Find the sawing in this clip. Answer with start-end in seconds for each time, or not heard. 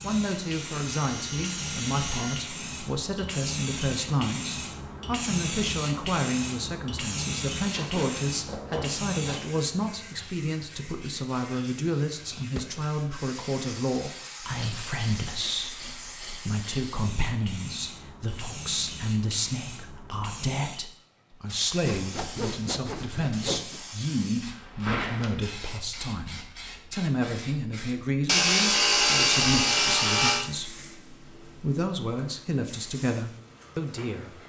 0.1-2.5, 7.7-9.4, 14.4-16.9, 21.8-23.8, 28.2-30.5.